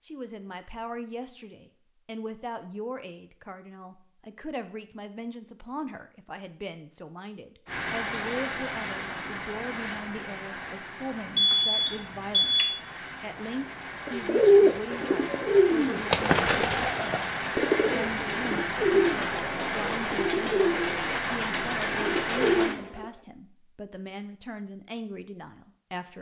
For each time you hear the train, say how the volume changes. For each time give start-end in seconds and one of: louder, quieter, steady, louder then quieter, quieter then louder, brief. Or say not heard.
7.7-22.8 quieter then louder.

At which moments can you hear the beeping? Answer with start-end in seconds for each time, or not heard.
11.3-12.8.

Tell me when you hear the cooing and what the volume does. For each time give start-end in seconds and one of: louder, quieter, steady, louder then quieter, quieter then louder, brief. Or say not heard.
14.1-23.1 quieter.